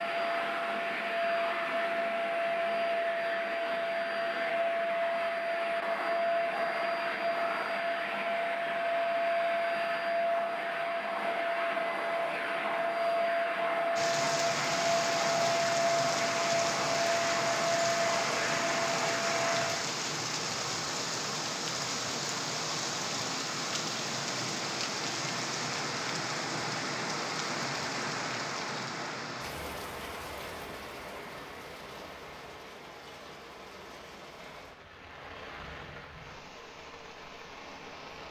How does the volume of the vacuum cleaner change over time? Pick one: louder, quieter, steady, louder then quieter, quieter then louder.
steady.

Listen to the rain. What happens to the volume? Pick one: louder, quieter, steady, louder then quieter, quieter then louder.
quieter.